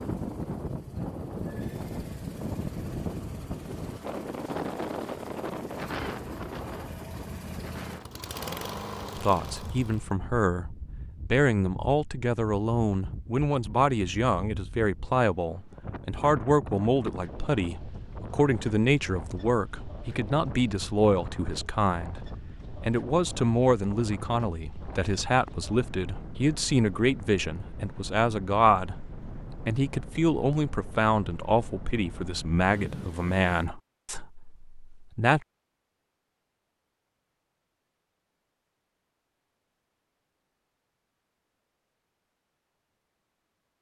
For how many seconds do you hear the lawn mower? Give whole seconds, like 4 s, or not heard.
10 s.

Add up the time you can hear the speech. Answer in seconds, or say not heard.
26 s.